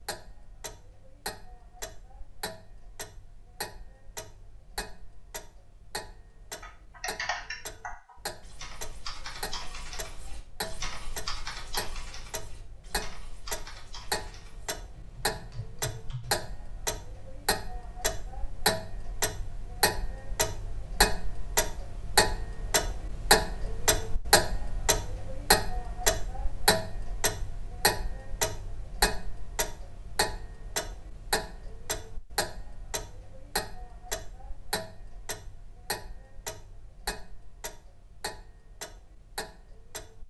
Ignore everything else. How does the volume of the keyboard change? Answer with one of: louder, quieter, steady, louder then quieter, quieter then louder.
quieter.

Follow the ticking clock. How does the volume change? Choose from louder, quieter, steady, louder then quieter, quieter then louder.
louder then quieter.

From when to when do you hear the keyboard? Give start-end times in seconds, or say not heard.
6.5-16.6.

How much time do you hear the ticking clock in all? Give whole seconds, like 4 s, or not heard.
40 s.